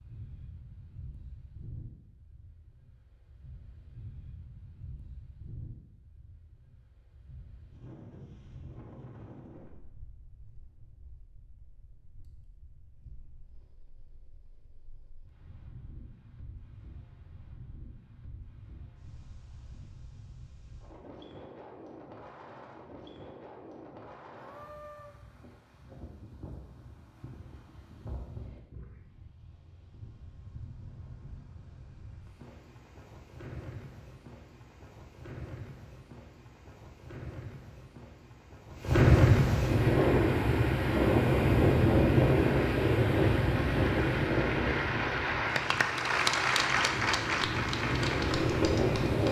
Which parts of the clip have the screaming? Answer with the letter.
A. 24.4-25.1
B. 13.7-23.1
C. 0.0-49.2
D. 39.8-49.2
A.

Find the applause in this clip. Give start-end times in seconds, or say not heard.
39.8-49.2.